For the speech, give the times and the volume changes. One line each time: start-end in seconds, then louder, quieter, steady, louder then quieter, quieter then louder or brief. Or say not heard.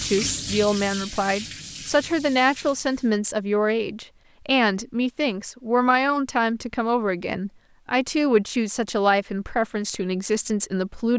0.0-11.1 steady.